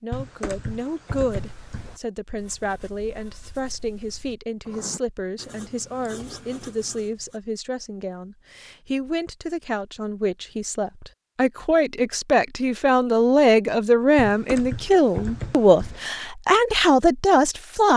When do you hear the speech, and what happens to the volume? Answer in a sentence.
You can hear the speech from 0.0 to 17.9 s, getting louder.